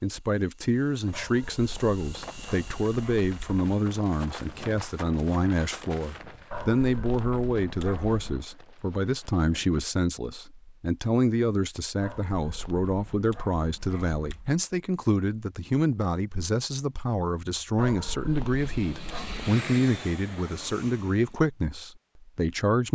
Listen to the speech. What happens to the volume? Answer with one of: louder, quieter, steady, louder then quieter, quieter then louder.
steady.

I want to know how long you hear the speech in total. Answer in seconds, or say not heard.
23 s.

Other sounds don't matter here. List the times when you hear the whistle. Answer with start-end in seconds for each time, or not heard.
not heard.